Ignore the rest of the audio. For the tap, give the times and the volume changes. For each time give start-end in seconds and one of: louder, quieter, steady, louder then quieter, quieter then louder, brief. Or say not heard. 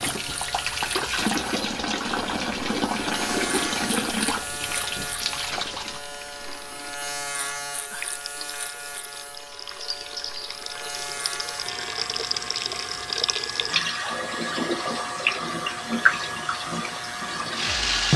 0.0-18.1 quieter then louder.